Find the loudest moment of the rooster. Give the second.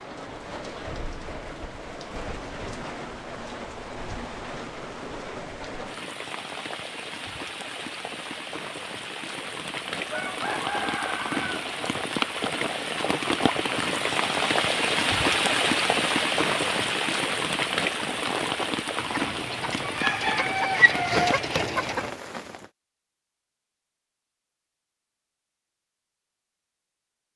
21 s.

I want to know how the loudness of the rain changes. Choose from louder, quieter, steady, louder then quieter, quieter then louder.
louder then quieter.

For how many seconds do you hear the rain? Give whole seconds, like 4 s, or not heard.
23 s.